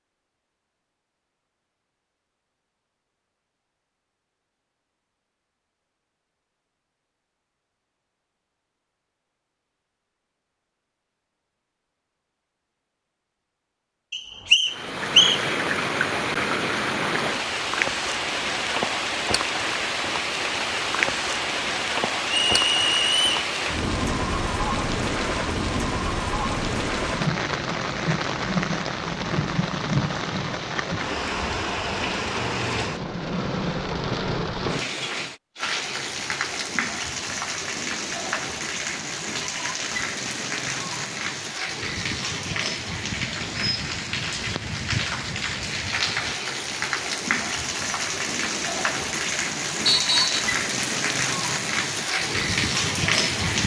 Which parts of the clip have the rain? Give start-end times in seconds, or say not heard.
14.7-53.6.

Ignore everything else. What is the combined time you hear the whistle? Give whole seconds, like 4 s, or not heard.
3 s.